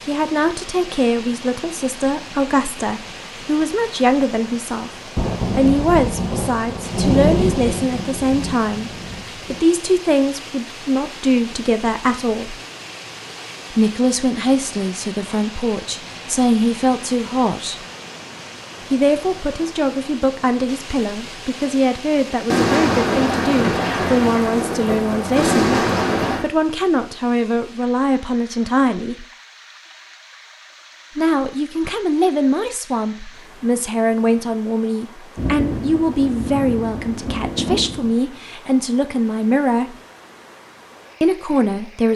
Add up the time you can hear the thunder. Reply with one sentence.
The thunder can be heard for 11 seconds in total.